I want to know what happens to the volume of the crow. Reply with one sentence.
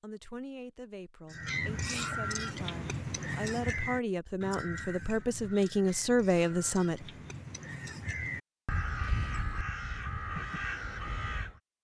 The loudness of the crow goes down, then up.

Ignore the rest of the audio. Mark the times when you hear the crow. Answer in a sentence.
You can hear the crow from 1.3 to 11.6 s.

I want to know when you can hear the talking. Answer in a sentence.
The talking can be heard from 0.0 to 7.0 s.